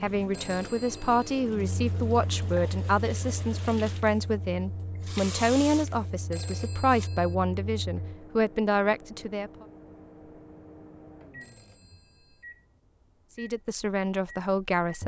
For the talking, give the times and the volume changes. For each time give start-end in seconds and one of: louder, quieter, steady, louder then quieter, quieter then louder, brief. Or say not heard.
0.0-9.7 steady
13.3-15.0 brief.